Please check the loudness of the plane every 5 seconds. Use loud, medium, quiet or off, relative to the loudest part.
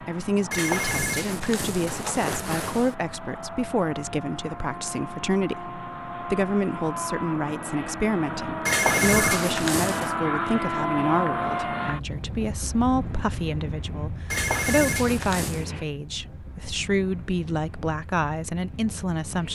medium, loud, loud, medium.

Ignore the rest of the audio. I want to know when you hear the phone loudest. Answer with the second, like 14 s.
9 s.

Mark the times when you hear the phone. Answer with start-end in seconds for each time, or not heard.
0.5-3.0, 8.7-10.2, 14.3-15.7.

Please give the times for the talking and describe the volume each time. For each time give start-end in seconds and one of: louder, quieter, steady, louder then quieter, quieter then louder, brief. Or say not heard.
0.0-19.5 steady.